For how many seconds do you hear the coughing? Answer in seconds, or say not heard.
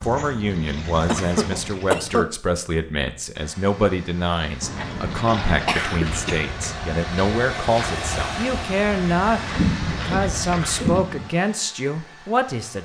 4 s.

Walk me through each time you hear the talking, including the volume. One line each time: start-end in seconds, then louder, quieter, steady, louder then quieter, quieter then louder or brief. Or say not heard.
0.0-12.8 steady.